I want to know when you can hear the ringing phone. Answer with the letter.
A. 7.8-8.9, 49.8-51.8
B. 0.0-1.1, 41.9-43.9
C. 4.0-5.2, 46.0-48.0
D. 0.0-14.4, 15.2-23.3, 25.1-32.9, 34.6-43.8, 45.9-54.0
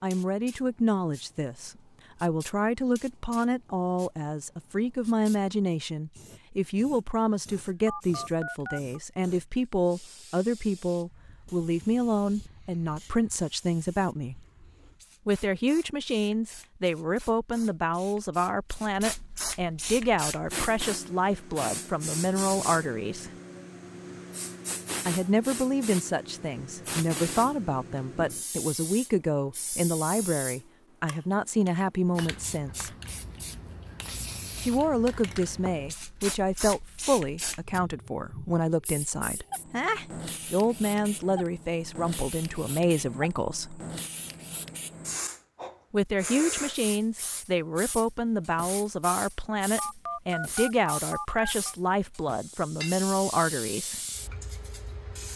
A.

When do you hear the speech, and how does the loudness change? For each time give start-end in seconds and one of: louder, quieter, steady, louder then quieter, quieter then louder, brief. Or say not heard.
0.0-14.4 steady
15.2-23.3 steady
25.1-32.9 steady
34.6-43.8 steady
45.9-54.0 steady.